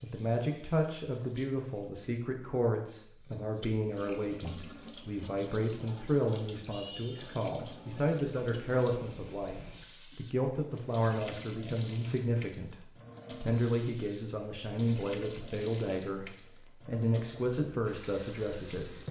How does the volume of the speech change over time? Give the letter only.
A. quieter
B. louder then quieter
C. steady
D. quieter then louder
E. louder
C.